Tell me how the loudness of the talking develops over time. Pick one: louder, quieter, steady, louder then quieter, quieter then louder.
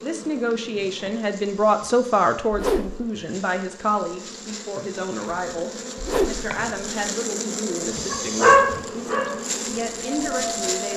quieter.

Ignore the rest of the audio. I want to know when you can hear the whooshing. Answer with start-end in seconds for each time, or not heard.
2.5-3.1, 6.0-6.5.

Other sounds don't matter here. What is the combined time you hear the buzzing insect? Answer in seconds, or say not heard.
11 s.